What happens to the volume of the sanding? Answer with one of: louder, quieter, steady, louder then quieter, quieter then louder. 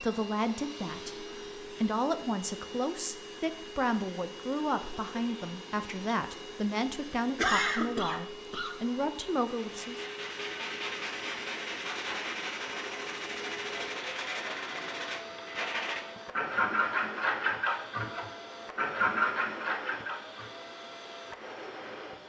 louder.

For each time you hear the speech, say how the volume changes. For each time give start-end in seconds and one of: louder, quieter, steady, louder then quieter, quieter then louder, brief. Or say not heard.
0.0-10.0 steady.